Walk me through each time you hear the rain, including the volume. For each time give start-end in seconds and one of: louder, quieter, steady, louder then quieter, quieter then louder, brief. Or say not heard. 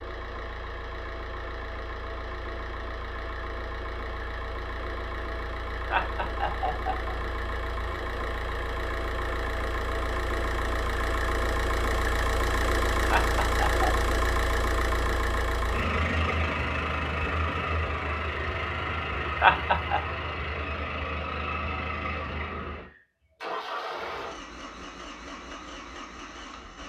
not heard.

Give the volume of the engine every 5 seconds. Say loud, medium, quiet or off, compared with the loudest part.
medium, medium, loud, loud, medium, quiet.